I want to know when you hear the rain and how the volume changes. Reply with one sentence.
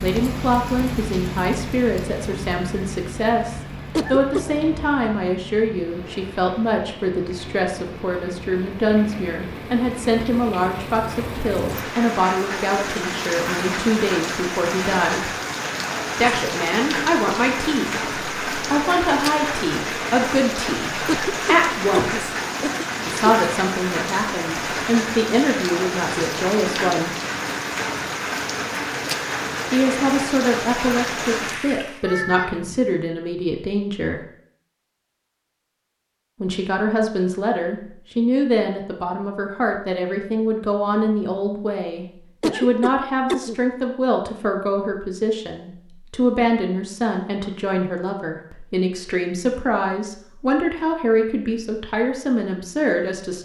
You can hear the rain from 0.0 to 32.0 s, getting louder.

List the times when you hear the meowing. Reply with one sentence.
You can hear the meowing from 4.5 to 5.0 s and from 32.0 to 32.9 s.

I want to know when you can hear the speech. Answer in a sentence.
The speech can be heard from 0.0 to 15.3 s, from 16.1 to 22.3 s, from 23.1 to 27.1 s, from 29.7 to 34.2 s and from 36.4 to 53.4 s.